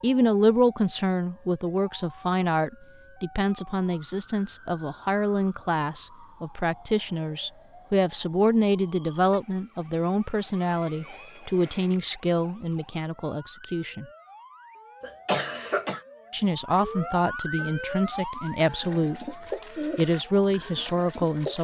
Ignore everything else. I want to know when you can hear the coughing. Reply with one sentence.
You can hear the coughing from 15.0 to 16.0 s.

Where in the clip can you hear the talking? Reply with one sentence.
You can hear the talking from 0.0 to 14.1 s and from 16.3 to 21.5 s.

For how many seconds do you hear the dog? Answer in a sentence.
You can't hear the dog here.